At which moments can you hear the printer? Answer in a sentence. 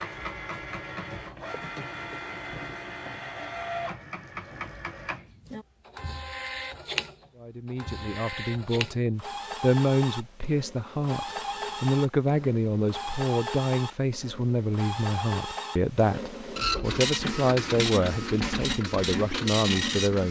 The printer can be heard from 0.0 to 20.2 s.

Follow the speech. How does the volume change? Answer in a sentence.
The volume of the speech stays about the same.